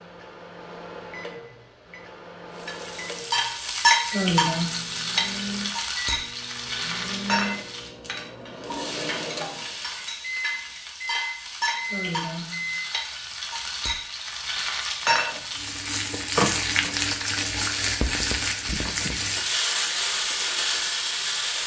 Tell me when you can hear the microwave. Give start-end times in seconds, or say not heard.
0.0-12.8.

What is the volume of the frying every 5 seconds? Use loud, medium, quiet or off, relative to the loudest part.
loud, medium, medium, loud, loud.